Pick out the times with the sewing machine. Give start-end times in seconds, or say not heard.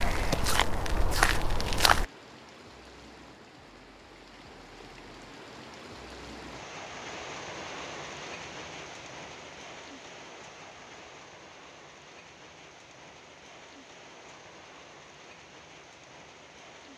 not heard.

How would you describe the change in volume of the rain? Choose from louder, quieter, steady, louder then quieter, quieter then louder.
louder then quieter.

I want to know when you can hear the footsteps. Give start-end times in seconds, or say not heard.
0.0-2.0.